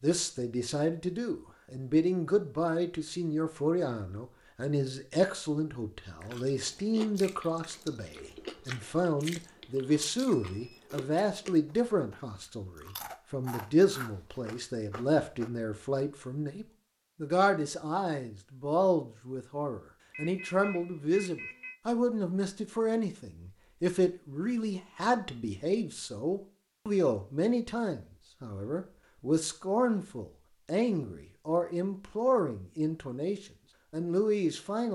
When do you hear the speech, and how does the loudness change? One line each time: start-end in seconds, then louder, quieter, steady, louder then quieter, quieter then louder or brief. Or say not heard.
0.0-34.8 steady.